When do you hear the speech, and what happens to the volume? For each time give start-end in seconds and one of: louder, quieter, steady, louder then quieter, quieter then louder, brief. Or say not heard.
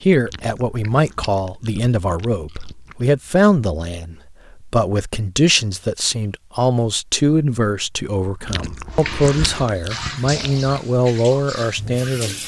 0.0-12.3 steady.